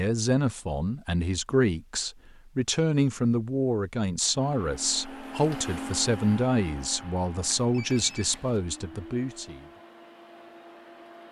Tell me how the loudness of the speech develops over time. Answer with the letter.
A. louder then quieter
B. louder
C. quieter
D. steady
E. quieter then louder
D.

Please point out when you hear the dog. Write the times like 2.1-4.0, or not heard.
not heard.